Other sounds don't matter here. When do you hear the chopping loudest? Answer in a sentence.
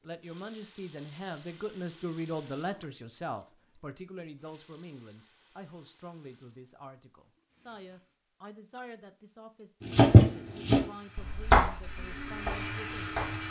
The volume of the chopping peaks at 10 seconds.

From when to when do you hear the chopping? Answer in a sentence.
The chopping can be heard from 9.9 to 13.4 s.